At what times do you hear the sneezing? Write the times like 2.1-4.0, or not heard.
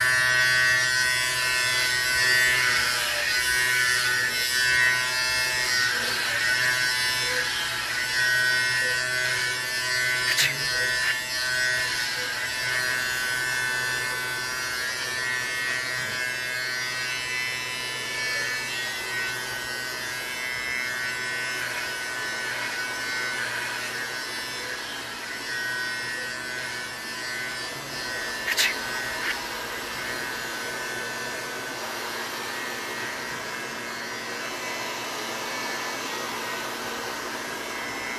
10.2-11.2, 28.4-29.4.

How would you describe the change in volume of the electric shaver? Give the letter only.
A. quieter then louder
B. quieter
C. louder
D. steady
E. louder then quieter
B.